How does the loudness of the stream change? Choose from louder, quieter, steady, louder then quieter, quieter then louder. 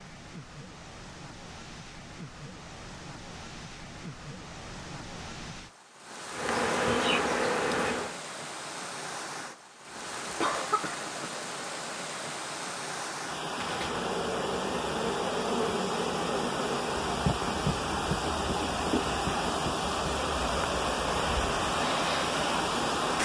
louder.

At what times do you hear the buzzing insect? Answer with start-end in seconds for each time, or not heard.
6.3-8.2, 13.4-23.2.